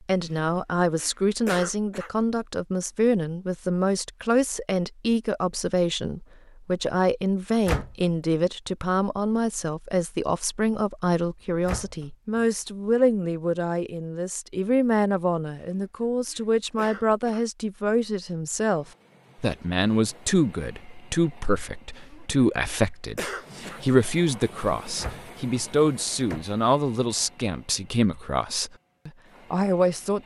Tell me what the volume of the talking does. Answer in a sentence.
The volume of the talking stays about the same.